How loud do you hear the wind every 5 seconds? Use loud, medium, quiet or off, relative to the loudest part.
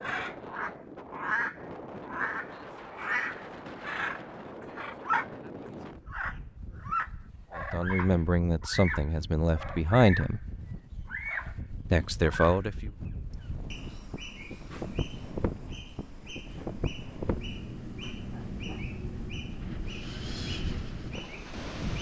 medium, medium, medium, loud, loud.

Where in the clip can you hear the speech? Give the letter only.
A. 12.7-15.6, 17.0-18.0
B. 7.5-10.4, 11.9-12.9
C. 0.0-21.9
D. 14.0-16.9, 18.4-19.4
B.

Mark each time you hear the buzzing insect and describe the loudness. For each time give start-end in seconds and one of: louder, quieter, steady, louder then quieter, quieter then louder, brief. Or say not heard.
not heard.